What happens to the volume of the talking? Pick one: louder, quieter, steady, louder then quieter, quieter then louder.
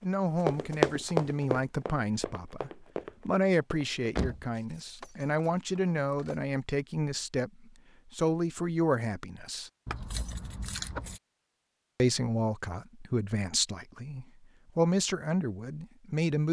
steady.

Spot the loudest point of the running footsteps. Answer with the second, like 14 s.
1 s.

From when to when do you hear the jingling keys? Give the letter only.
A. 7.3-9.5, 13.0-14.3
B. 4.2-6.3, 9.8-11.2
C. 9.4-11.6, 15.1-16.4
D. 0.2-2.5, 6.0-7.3
B.